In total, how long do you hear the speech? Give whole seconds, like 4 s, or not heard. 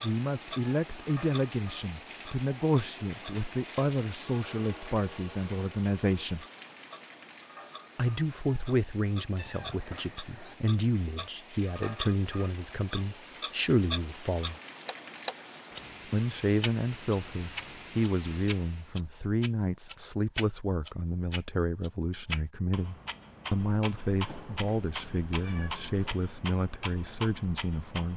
25 s.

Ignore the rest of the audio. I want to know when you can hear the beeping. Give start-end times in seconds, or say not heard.
not heard.